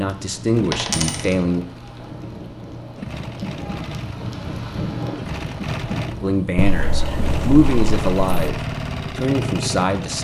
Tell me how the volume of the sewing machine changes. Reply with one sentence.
The volume of the sewing machine goes up.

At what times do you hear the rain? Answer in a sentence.
You can hear the rain from 0.0 to 6.6 s.